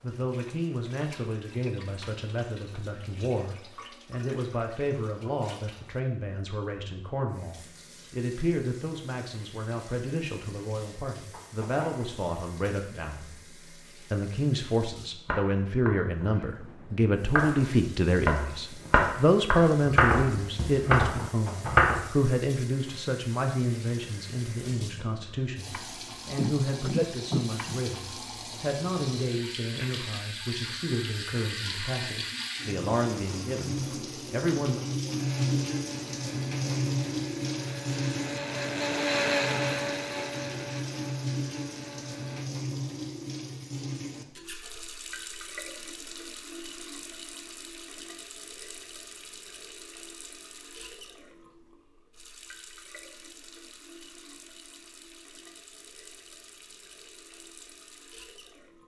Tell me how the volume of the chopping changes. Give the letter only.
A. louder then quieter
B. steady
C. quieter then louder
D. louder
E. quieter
D.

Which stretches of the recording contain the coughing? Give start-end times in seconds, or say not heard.
26.2-27.8.